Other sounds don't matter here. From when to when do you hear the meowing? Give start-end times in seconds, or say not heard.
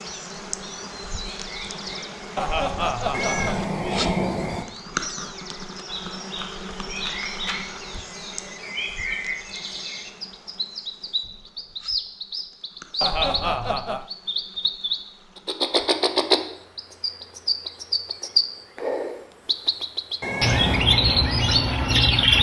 3.1-4.7, 20.2-20.9.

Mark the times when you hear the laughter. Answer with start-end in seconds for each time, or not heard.
2.4-3.6, 13.0-14.1.